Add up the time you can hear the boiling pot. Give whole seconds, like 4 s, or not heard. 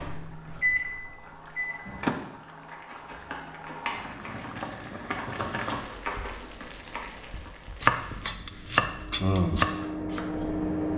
8 s.